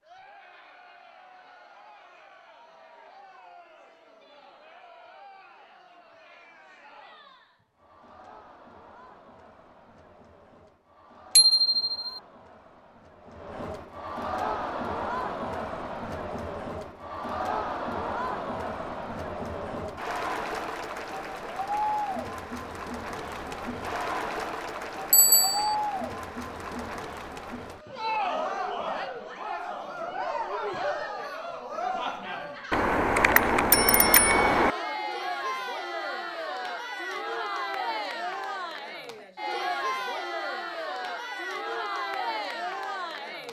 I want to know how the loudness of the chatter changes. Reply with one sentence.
The volume of the chatter goes up.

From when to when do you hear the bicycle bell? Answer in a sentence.
You can hear the bicycle bell from 11.3 to 12.2 s, from 25.1 to 25.8 s and from 32.7 to 34.7 s.